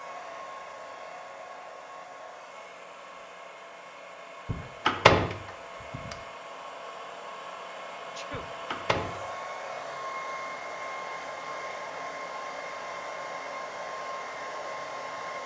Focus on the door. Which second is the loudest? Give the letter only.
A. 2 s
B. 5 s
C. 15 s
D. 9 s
B.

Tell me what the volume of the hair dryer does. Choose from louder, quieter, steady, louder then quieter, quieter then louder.
louder.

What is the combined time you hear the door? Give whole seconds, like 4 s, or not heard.
3 s.